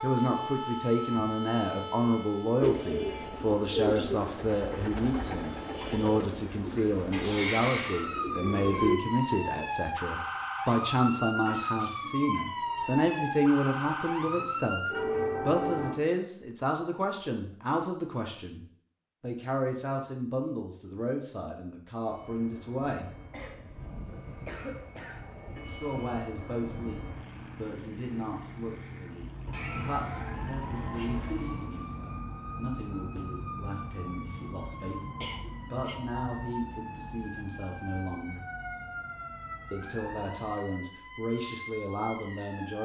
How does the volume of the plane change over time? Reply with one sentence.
The loudness of the plane goes up.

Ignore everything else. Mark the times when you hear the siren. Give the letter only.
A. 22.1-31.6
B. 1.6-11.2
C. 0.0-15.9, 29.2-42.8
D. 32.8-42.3
C.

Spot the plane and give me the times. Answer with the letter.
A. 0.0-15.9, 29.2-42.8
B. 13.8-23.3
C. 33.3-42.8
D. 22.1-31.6
D.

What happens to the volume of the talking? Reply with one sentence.
The volume of the talking goes down.